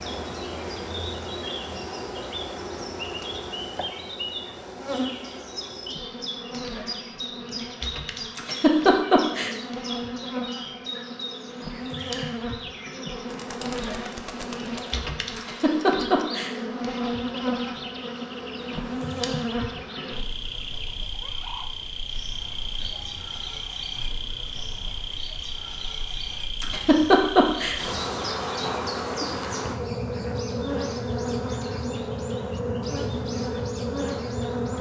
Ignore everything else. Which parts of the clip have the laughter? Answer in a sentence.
The laughter can be heard from 8.3 to 9.5 s, from 15.3 to 16.6 s and from 26.6 to 27.8 s.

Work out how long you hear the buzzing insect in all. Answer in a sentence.
The buzzing insect can be heard for 35 seconds in total.